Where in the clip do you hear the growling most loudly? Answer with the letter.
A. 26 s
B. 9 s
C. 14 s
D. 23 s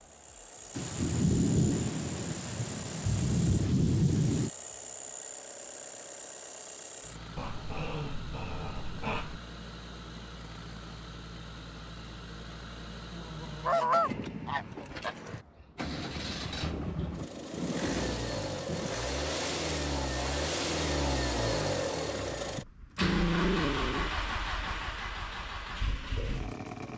D.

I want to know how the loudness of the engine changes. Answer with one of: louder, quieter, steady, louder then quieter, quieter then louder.
louder.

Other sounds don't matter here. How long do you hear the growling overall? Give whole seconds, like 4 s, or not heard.
3 s.